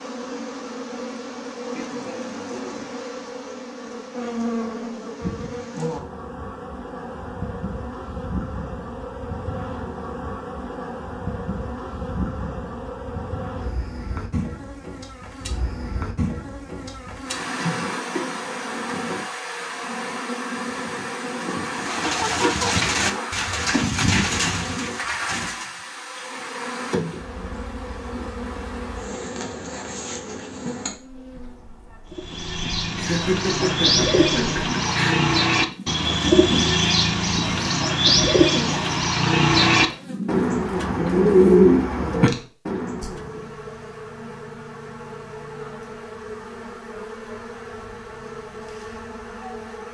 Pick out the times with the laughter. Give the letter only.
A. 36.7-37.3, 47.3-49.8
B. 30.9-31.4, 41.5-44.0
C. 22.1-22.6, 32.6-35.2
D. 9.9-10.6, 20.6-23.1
C.